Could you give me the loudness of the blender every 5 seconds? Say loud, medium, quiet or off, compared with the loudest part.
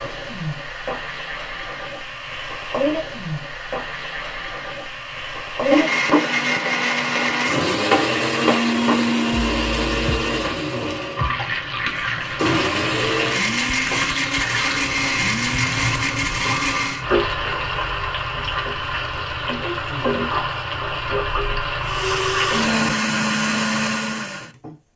off, loud, loud, loud, loud.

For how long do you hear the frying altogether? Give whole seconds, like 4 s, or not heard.
23 s.